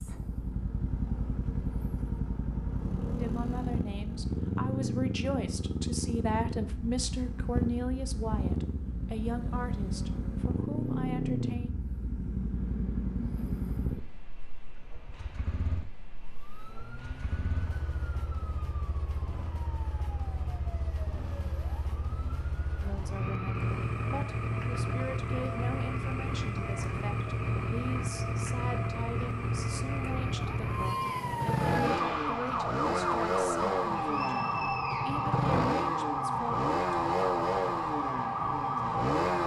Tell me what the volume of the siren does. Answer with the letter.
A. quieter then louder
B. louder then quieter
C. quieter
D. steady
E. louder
E.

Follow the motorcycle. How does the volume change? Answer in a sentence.
The volume of the motorcycle goes down, then up.